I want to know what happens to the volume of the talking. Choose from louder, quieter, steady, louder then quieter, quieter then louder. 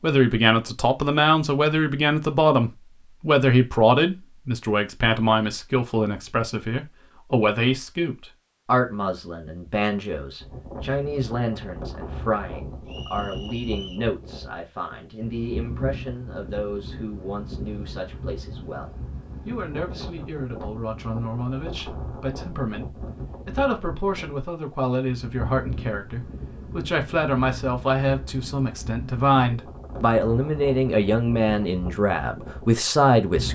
quieter then louder.